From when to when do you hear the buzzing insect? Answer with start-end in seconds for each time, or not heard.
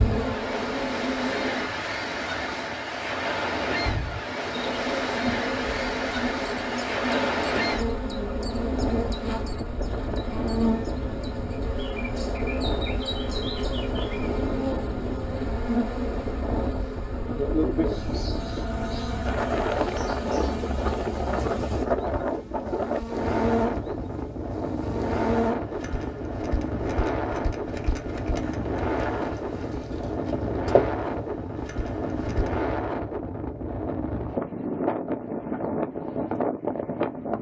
0.0-1.6, 4.5-32.5.